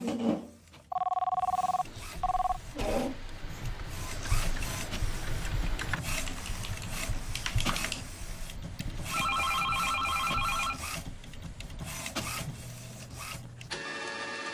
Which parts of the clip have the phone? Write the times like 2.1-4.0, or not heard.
0.9-2.6, 9.1-10.8.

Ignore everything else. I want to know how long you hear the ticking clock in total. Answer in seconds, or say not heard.
not heard.